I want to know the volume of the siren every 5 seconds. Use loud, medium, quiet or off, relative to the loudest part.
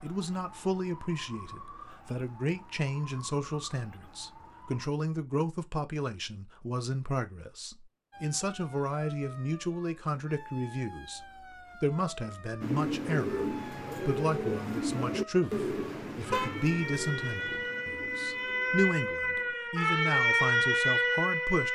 quiet, quiet, quiet, medium, loud.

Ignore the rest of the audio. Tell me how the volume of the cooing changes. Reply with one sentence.
The loudness of the cooing goes down.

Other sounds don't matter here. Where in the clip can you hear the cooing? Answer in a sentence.
The cooing can be heard from 12.6 to 19.6 s.